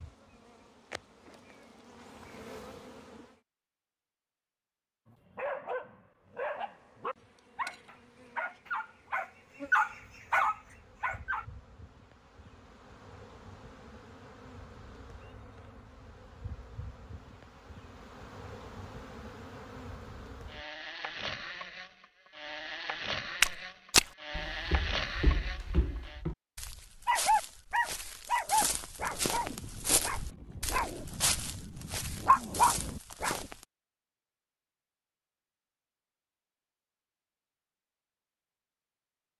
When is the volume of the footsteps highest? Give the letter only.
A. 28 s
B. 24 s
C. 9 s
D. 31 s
B.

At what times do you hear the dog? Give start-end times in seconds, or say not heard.
5.1-11.4, 27.1-33.5.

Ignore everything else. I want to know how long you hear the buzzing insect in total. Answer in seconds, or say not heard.
23 s.